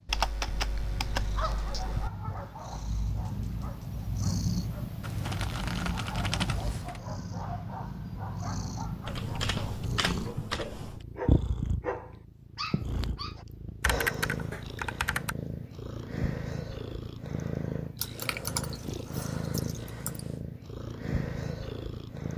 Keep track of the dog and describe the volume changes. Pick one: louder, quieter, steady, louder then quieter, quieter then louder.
quieter then louder.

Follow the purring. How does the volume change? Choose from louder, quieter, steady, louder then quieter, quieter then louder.
steady.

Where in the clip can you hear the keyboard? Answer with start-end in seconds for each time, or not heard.
0.1-2.1, 5.0-7.0, 9.1-11.0, 13.8-15.3, 18.0-20.4.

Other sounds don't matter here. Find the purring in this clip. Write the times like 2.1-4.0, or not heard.
0.0-22.3.